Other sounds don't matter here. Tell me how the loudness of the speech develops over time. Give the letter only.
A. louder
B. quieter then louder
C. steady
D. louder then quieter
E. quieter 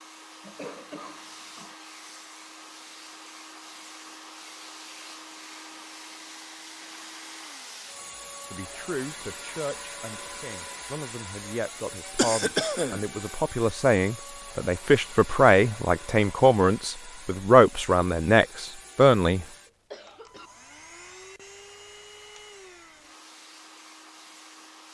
A.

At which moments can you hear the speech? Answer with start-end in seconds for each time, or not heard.
8.5-19.4.